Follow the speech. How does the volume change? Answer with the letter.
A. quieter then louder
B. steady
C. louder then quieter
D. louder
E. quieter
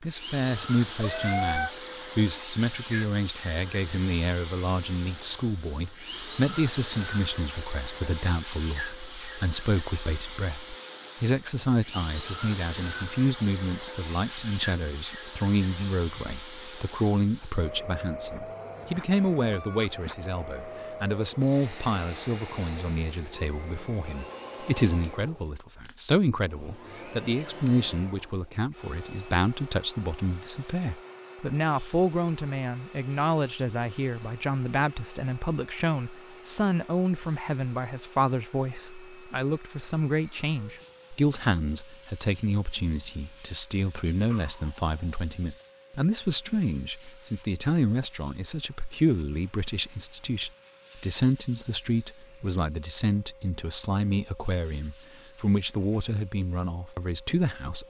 B.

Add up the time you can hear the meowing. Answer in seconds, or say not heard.
2 s.